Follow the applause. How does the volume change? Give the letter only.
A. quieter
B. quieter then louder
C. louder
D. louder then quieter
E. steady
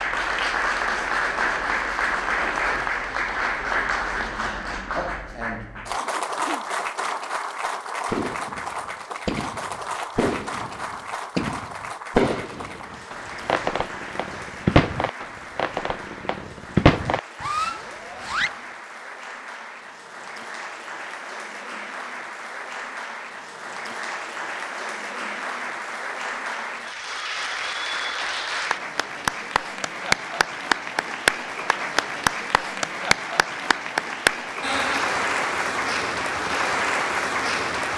B.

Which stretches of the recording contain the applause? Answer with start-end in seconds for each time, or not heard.
0.0-37.9.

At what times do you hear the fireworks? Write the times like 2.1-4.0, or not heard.
8.1-18.6.